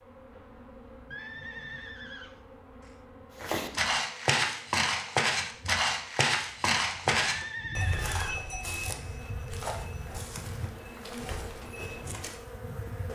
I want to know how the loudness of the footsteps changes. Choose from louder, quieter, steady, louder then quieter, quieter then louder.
quieter.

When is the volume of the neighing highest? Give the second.
8 s.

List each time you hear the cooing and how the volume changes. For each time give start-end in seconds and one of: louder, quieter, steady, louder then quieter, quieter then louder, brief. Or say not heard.
not heard.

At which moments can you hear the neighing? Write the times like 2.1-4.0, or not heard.
1.1-3.0, 7.3-9.2.